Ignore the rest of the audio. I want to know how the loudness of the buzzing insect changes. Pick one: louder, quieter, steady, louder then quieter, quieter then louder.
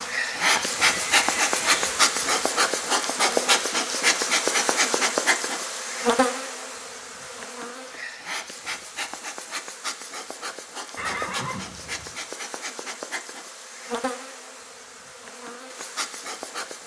quieter.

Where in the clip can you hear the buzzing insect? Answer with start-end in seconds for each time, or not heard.
0.0-16.8.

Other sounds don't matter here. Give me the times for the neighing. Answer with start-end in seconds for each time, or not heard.
0.6-2.4, 10.9-12.2.